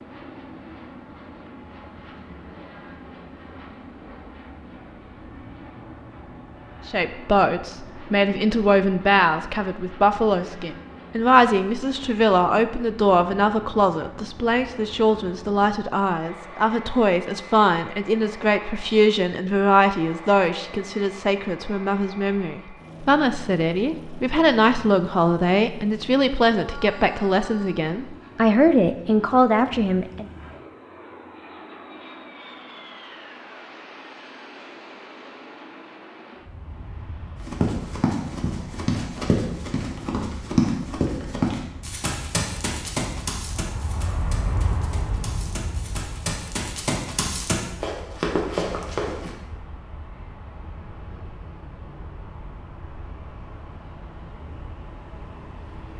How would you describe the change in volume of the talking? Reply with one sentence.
The loudness of the talking stays about the same.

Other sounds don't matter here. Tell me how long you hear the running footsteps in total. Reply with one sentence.
You can hear the running footsteps for 12 seconds altogether.